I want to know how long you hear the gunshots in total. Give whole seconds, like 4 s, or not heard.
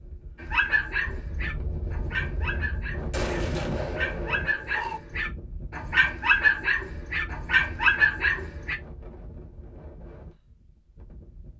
2 s.